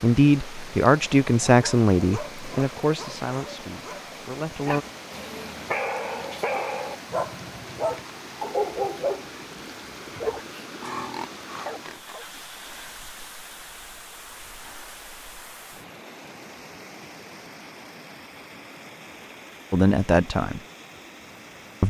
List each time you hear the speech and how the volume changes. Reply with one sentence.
The speech can be heard from 0.0 to 4.8 s, getting quieter; and briefly from 19.7 to 20.6 s.